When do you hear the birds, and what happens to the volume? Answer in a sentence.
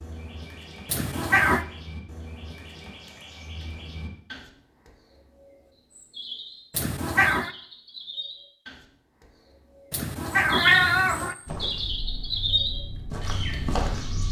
You can hear the birds from 0.0 to 14.2 s, getting louder.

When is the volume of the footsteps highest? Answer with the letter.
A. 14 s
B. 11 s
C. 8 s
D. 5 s
A.